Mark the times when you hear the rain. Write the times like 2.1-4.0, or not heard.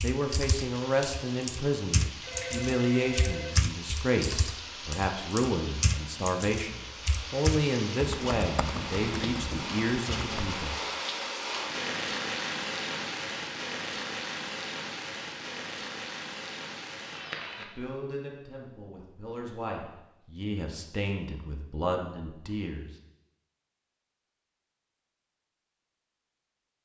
0.0-17.6.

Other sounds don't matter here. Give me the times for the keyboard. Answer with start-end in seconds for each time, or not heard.
0.0-10.6.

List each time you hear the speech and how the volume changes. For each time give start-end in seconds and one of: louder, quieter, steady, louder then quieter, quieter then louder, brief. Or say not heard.
0.0-10.8 steady
17.6-22.9 louder.